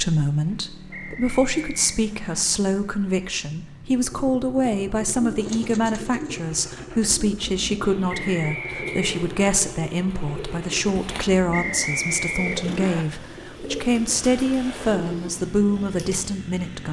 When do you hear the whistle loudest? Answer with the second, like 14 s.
12 s.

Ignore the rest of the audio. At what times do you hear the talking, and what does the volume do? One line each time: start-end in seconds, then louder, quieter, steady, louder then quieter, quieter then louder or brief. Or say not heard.
0.0-16.8 steady.